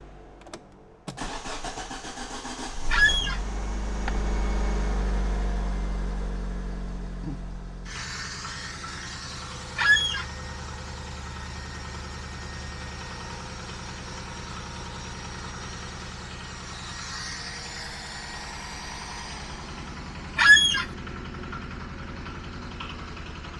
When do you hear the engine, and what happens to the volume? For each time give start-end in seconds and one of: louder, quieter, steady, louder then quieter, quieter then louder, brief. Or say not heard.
0.0-23.5 steady.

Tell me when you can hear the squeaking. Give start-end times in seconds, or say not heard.
2.9-3.4, 9.8-10.2, 20.4-20.9.